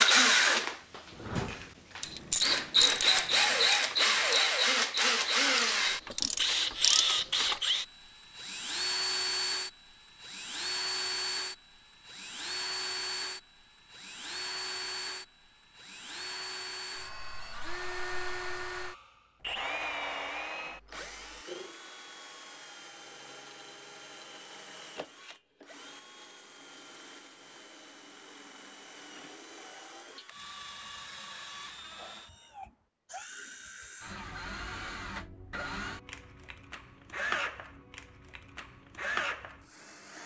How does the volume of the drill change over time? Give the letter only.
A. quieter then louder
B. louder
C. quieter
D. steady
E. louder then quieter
A.